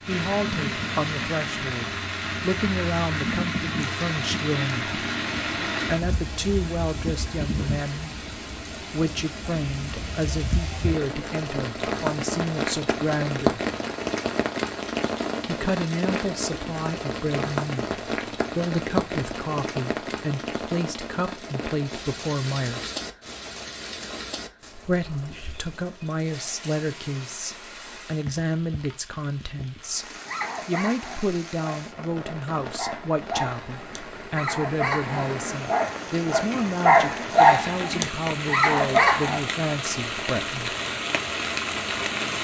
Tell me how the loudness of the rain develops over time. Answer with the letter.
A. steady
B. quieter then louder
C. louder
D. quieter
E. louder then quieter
B.